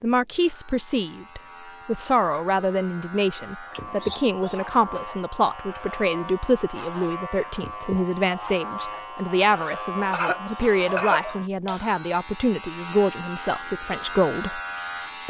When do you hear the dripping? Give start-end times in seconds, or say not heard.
not heard.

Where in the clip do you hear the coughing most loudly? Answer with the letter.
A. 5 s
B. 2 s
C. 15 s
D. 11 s
D.